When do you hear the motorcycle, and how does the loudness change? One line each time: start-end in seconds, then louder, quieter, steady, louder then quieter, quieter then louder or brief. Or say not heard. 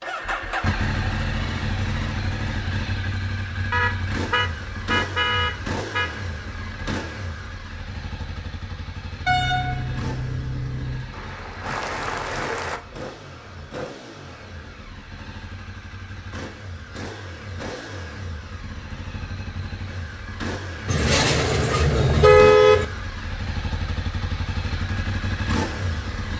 0.0-26.3 quieter then louder.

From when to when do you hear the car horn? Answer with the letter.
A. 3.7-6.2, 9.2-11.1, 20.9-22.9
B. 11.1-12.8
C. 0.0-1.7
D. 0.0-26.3
A.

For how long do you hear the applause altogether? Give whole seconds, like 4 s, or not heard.
2 s.